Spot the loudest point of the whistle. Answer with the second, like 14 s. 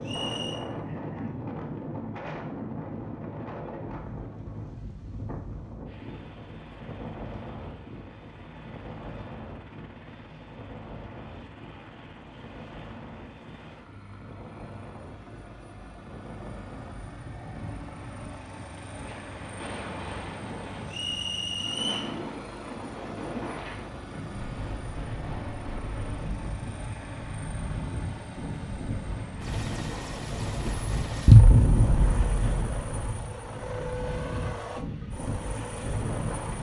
22 s.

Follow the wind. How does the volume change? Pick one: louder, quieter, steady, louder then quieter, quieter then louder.
quieter then louder.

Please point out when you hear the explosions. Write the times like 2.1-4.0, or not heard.
31.2-32.5.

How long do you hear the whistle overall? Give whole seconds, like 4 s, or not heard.
2 s.